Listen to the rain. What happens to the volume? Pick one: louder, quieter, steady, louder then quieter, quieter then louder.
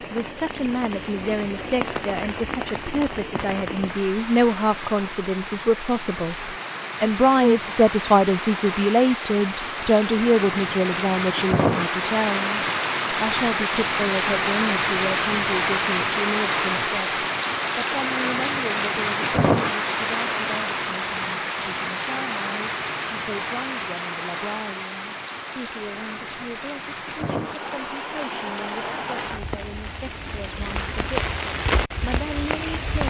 louder then quieter.